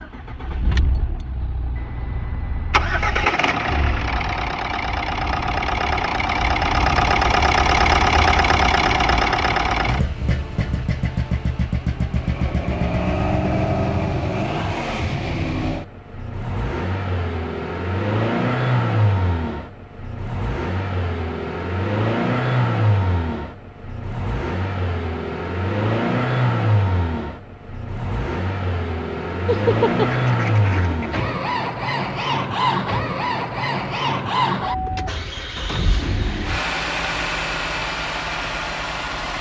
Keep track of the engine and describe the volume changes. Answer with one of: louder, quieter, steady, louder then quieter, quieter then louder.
steady.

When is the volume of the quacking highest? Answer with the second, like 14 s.
30 s.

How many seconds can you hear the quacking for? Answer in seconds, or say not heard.
2 s.